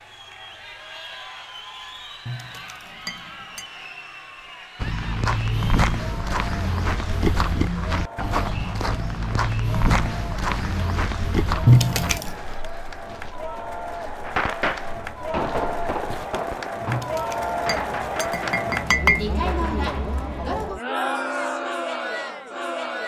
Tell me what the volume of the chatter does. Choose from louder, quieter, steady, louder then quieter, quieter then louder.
louder.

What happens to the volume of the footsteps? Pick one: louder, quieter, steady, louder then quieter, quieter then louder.
quieter.